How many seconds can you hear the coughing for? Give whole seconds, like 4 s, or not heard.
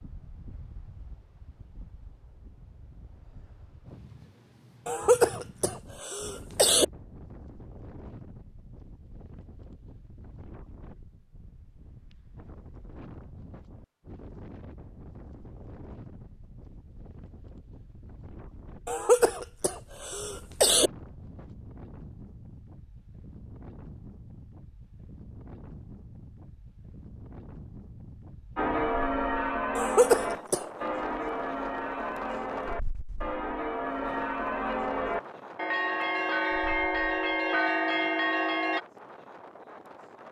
5 s.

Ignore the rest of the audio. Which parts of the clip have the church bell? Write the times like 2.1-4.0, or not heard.
28.6-38.8.